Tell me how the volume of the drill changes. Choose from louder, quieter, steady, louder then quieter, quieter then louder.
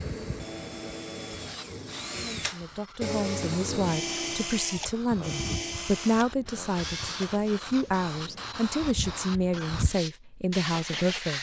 louder then quieter.